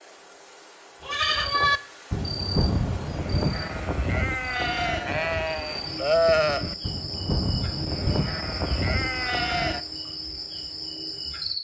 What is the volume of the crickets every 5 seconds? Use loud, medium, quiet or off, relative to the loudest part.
medium, loud, loud.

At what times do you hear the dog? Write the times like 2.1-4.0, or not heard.
not heard.